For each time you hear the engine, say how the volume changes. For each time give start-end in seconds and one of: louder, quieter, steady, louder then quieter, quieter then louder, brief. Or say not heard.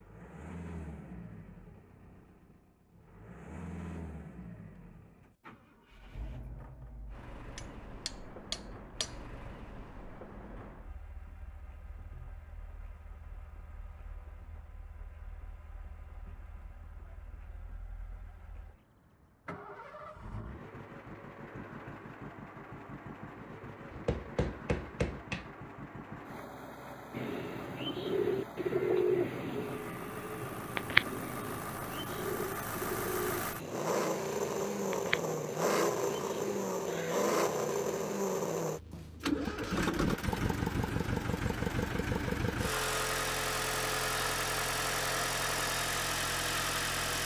0.0-47.2 quieter then louder.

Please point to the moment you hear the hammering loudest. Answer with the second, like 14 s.
25 s.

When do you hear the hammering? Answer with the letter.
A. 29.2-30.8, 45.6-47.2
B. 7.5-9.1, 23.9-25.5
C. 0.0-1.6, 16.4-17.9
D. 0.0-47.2
B.